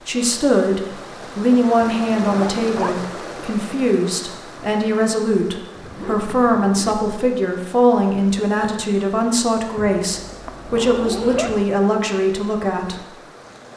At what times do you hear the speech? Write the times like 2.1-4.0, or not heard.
0.1-13.1.